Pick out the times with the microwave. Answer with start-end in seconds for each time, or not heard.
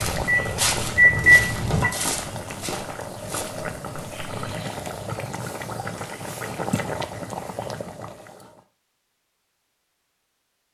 0.1-1.9.